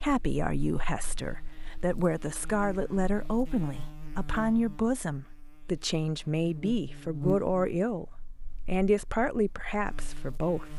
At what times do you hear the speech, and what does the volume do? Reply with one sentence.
You can hear the speech from 0.0 to 10.7 s, at a steady volume.